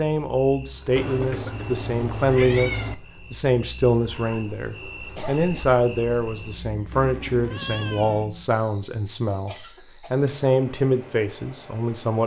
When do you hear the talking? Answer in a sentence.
You can hear the talking from 0.0 to 12.2 s.